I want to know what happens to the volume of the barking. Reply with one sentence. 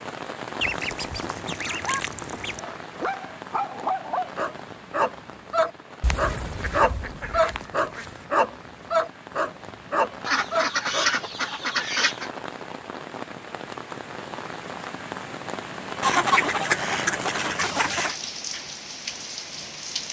The volume of the barking goes up.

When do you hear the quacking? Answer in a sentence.
The quacking can be heard from 0.6 to 2.6 s, from 6.0 to 8.2 s, from 10.2 to 12.3 s and from 16.0 to 18.1 s.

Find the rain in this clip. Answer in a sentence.
The rain can be heard from 0.0 to 20.0 s.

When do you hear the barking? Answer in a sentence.
The barking can be heard from 1.6 to 11.1 s.